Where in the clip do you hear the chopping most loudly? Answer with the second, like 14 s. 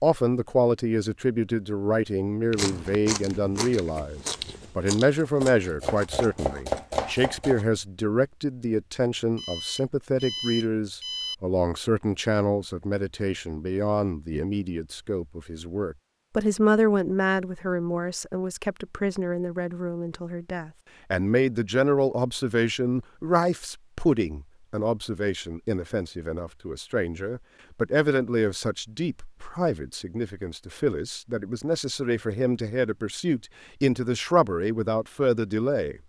7 s.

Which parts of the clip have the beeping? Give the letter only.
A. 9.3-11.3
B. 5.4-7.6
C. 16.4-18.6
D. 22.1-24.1
A.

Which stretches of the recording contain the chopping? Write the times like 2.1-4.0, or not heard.
5.4-7.6.